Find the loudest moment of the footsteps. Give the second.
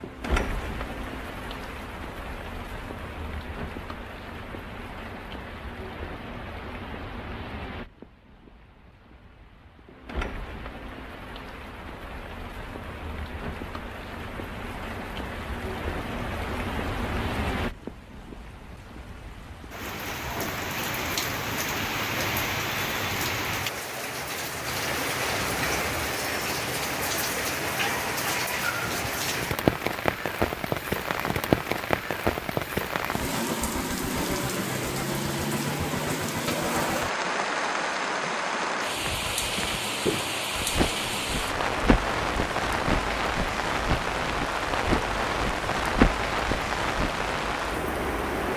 46 s.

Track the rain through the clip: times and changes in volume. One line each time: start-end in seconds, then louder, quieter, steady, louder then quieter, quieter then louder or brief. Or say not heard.
0.0-48.5 louder.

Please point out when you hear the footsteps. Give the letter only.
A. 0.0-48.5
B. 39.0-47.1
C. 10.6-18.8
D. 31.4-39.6
B.